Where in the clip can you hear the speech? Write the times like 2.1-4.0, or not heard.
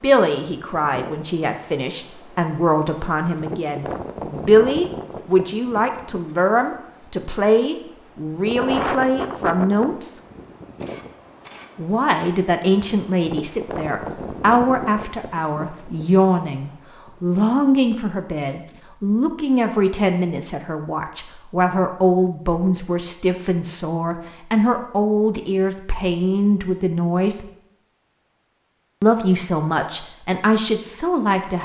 0.0-10.2, 11.8-27.4, 29.0-31.6.